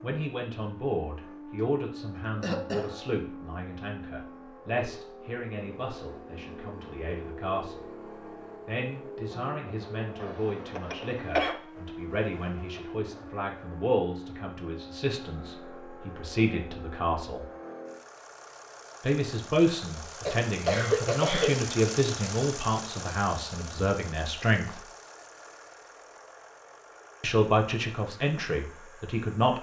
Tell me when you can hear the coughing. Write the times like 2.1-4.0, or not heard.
2.3-3.0, 10.2-11.6, 20.2-21.6.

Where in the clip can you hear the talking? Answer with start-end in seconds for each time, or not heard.
0.0-7.8, 8.7-17.4, 19.0-24.8, 27.2-29.5.